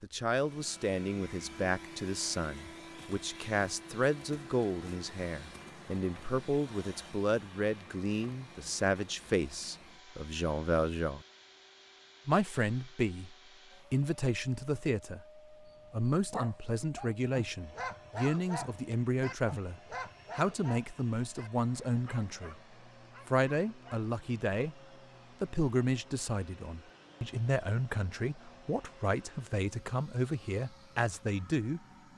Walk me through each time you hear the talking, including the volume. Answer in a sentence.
You can hear the talking from 0.0 to 11.2 s, at a steady volume; from 12.2 to 22.6 s, at a steady volume; briefly from 23.2 to 24.8 s; and from 25.4 to 32.1 s, at a steady volume.